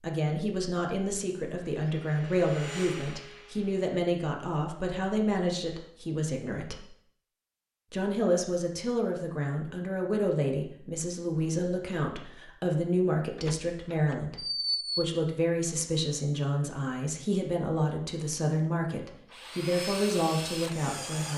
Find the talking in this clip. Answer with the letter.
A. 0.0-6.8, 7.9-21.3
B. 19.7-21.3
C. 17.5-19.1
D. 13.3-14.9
A.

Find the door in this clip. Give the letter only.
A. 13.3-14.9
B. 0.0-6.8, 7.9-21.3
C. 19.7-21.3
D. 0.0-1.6
A.